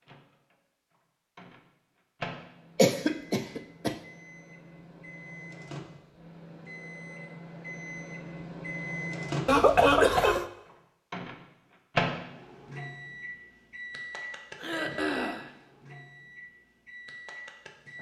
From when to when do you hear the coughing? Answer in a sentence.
You can hear the coughing from 2.8 to 4.0 s, from 9.4 to 10.4 s and from 14.6 to 15.5 s.